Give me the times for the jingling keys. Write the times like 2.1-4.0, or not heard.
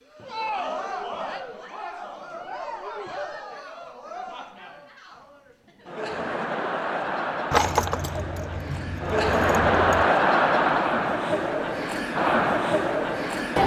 7.5-10.1.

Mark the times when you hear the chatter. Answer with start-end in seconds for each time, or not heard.
0.0-13.6.